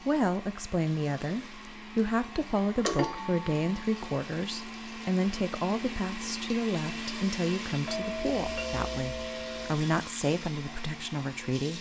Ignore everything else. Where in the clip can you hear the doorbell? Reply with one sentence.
You can hear the doorbell from 2.9 to 3.9 s and from 7.8 to 9.8 s.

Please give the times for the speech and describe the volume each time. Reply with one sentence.
You can hear the speech from 0.0 to 11.7 s, at a steady volume.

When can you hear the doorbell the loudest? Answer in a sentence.
The loudest moment of the doorbell is at 3 seconds.